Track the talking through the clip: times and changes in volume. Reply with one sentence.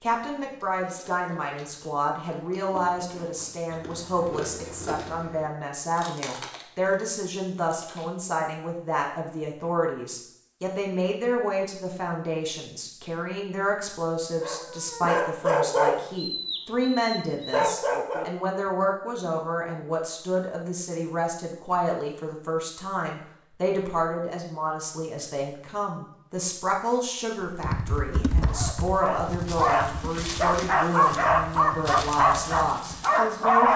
The talking can be heard from 0.0 to 33.7 s, at a steady volume.